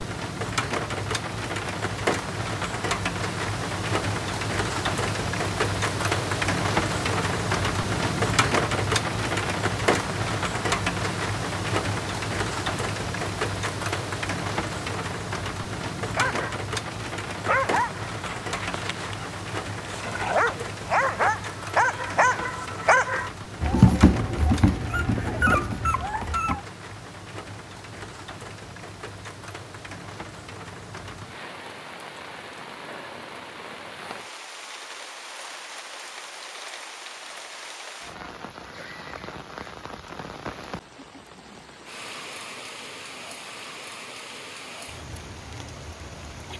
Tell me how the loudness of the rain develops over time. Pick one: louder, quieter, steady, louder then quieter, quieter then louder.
quieter.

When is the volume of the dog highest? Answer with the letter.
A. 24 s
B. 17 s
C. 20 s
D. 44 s
A.